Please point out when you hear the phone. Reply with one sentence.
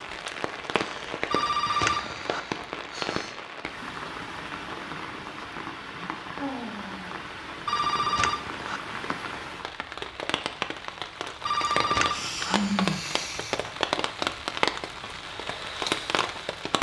The phone can be heard from 1.3 to 2.4 s, from 7.7 to 8.8 s and from 11.4 to 12.6 s.